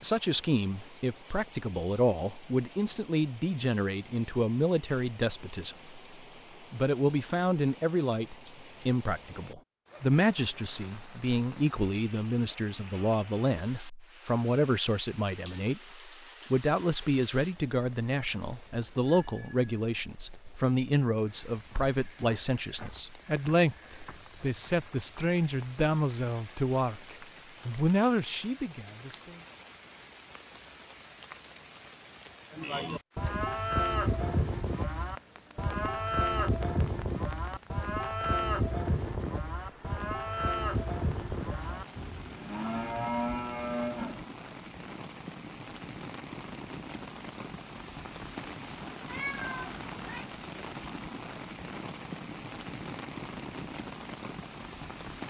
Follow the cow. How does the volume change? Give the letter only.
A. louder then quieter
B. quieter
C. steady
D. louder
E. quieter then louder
C.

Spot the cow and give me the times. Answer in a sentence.
The cow can be heard from 32.5 to 44.2 s.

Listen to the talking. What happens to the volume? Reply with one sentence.
The loudness of the talking stays about the same.